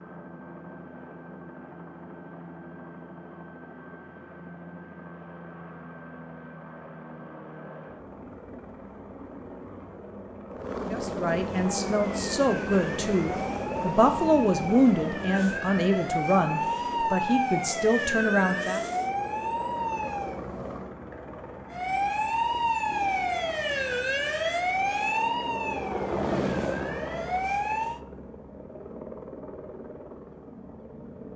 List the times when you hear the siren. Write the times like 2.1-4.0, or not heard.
11.5-20.4, 21.7-28.0.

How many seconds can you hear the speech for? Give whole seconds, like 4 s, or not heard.
8 s.